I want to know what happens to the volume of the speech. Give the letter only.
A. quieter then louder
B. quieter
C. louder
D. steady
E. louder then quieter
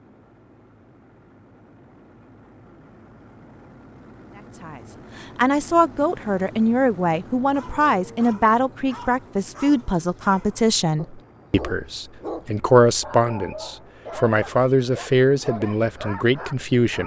D.